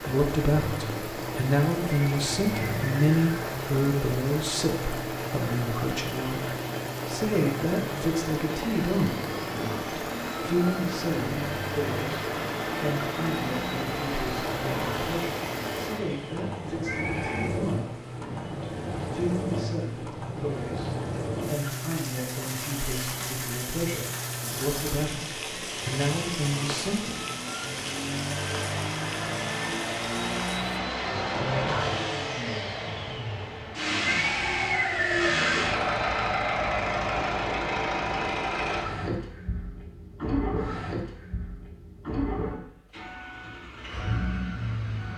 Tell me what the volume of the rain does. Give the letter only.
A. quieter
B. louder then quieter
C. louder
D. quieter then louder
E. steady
E.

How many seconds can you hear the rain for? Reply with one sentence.
The rain can be heard for 31 seconds in total.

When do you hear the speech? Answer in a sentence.
You can hear the speech from 0.0 to 27.2 s.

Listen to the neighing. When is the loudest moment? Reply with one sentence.
The volume of the neighing peaks at 35 seconds.